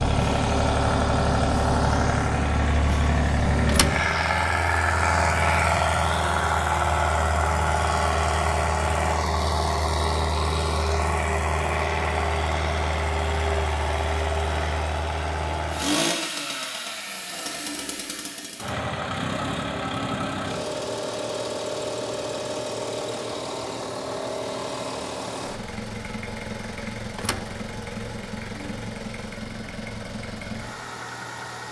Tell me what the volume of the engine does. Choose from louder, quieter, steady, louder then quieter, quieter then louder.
quieter.